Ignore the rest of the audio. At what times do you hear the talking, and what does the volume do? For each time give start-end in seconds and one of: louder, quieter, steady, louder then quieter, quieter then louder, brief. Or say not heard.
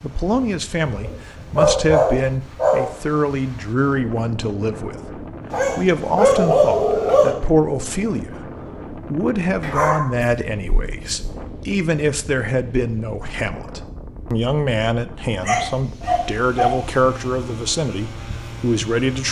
0.0-19.2 steady.